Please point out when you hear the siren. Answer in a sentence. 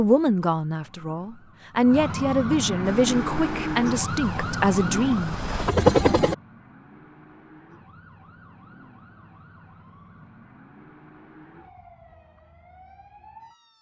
The siren can be heard from 0.0 to 13.7 s.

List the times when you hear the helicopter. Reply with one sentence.
The helicopter can be heard from 2.8 to 6.3 s.